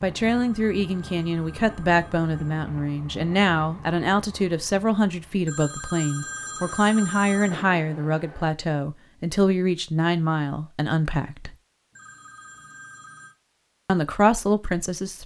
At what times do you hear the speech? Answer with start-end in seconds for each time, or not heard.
0.0-11.6, 13.8-15.2.